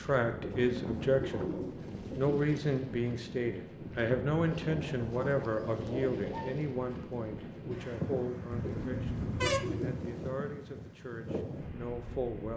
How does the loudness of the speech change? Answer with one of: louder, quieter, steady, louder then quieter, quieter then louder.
quieter.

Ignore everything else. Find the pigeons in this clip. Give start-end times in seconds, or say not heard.
0.4-2.5, 4.5-6.7, 8.6-10.3.